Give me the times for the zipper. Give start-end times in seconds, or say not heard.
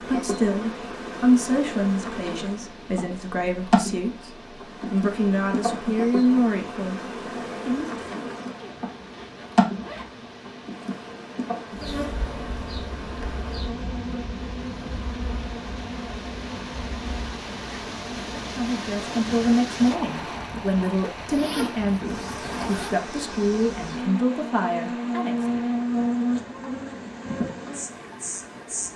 8.6-10.1, 21.2-23.0.